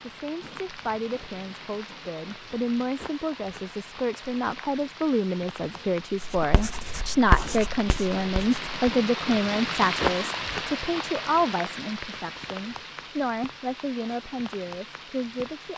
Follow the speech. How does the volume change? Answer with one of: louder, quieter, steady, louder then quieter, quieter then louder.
louder then quieter.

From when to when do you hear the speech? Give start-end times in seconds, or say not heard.
0.0-15.7.